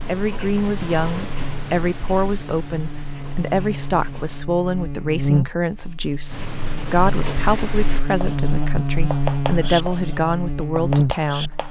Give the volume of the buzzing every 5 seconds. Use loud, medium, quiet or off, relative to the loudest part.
medium, loud, loud.